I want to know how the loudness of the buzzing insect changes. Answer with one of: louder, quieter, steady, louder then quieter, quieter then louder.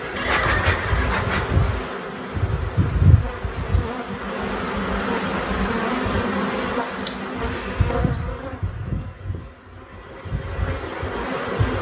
quieter.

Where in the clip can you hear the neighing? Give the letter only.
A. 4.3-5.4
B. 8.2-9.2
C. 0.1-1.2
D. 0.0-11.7
C.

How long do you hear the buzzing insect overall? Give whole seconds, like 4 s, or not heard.
12 s.